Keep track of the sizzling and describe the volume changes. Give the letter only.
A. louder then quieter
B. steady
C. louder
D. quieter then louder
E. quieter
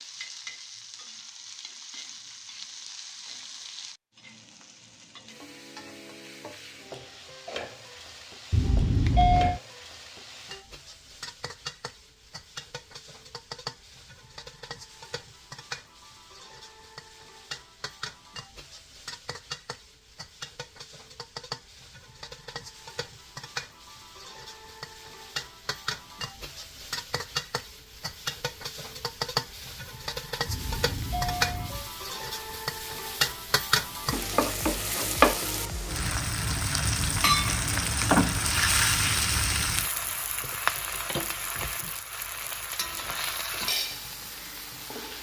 C.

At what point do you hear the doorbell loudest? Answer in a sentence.
The volume of the doorbell peaks at 9 seconds.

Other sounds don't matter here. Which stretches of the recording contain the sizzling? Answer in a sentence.
The sizzling can be heard from 0.0 to 45.1 s.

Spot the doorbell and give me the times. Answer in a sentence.
You can hear the doorbell from 8.5 to 9.6 s and from 30.4 to 31.9 s.